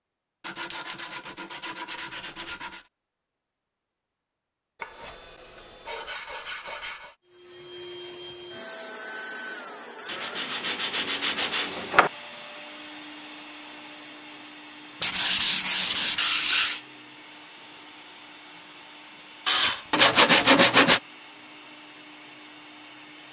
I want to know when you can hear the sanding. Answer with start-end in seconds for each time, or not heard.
0.4-2.9, 4.8-7.2, 10.1-12.1, 15.0-16.8, 19.4-21.0.